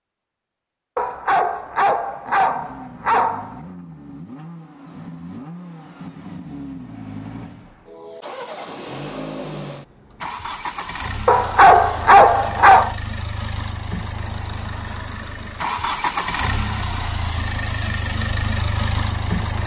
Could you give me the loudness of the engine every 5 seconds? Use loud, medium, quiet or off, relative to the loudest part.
quiet, medium, medium, loud.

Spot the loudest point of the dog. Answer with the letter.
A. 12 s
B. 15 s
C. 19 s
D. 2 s
A.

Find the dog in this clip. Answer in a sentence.
You can hear the dog from 0.9 to 3.6 s and from 11.2 to 12.9 s.